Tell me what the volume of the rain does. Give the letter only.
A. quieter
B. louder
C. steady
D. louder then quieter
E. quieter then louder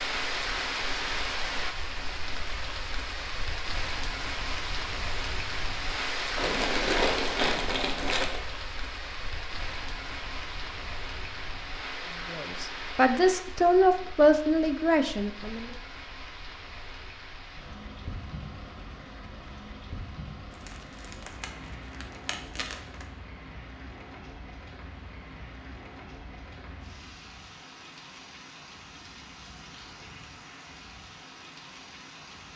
A.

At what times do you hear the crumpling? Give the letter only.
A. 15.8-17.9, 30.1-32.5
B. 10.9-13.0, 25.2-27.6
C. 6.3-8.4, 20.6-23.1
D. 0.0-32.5
C.